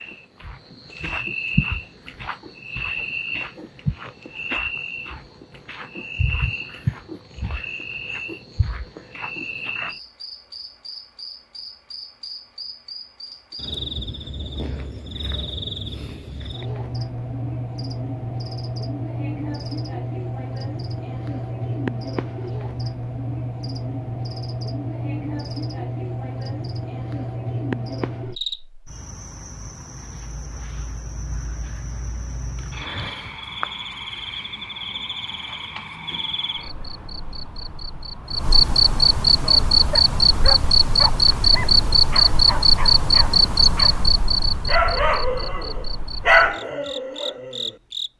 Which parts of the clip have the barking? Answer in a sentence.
You can hear the barking from 39.3 to 44.0 s and from 44.6 to 47.7 s.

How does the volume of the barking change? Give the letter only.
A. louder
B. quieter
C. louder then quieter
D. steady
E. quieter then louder
C.